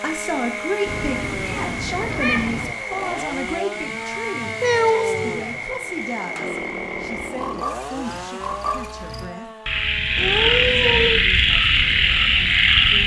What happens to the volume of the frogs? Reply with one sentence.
The loudness of the frogs goes up.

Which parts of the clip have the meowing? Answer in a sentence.
You can hear the meowing from 0.8 to 2.8 s, from 4.6 to 5.7 s and from 10.2 to 11.2 s.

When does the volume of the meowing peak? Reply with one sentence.
The loudest moment of the meowing is at 5 seconds.